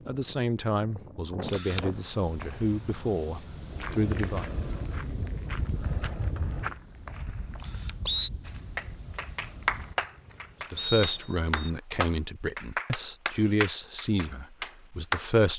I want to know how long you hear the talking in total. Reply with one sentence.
The talking can be heard for 9 seconds in total.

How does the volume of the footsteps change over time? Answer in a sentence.
The volume of the footsteps goes down.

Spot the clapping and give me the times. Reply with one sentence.
You can hear the clapping from 8.4 to 15.3 s.